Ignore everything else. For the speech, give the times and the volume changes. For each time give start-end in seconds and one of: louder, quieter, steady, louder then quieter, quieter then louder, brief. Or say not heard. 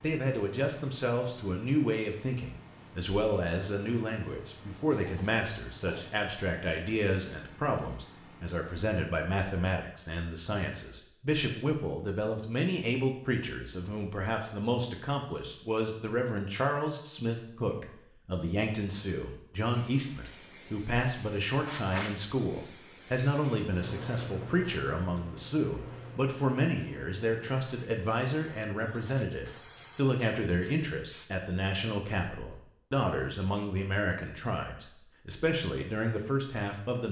0.0-37.0 steady.